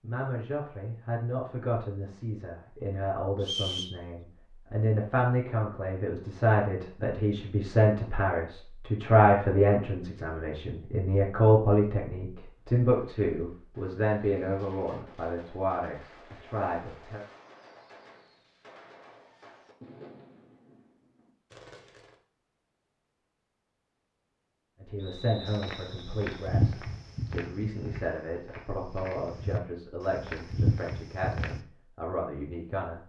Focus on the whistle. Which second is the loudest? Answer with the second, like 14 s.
4 s.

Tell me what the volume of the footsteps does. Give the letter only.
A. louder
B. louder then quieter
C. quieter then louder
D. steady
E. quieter
C.